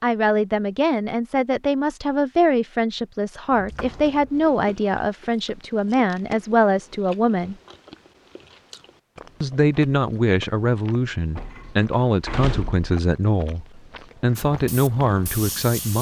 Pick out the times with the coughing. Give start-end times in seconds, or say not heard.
not heard.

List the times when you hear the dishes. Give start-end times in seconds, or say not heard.
not heard.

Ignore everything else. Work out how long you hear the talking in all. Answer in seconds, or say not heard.
14 s.